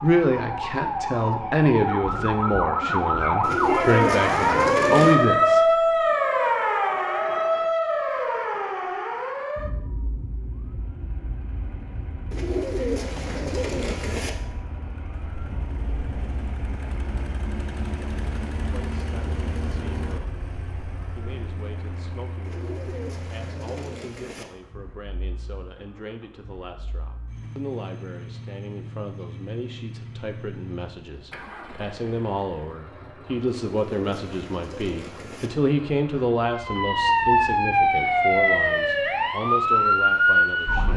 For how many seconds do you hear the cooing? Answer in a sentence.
You can hear the cooing for 8 seconds altogether.